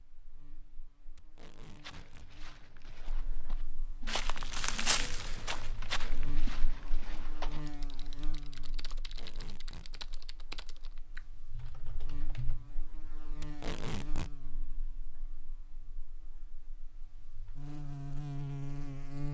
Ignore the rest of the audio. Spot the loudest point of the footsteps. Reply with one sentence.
The volume of the footsteps peaks at 5 seconds.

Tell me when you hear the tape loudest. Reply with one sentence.
The volume of the tape peaks at 14 seconds.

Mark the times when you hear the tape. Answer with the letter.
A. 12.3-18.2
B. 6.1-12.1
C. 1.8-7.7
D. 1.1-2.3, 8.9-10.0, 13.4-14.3
D.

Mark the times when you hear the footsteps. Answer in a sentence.
You can hear the footsteps from 1.8 to 7.7 s.